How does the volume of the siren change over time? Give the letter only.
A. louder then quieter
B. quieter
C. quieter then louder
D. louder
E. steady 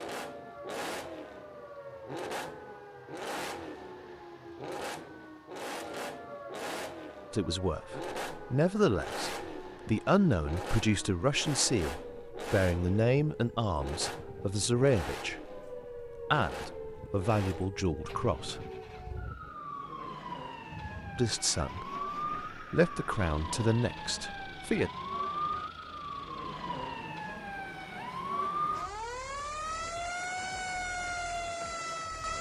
D.